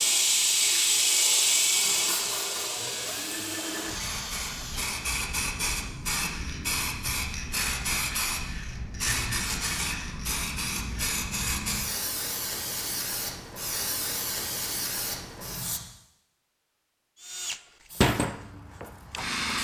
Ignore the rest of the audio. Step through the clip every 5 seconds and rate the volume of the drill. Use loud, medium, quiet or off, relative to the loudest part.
medium, off, off, loud.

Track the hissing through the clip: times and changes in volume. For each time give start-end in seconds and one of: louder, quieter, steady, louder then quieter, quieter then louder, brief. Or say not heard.
0.0-15.8 quieter
17.9-19.5 brief.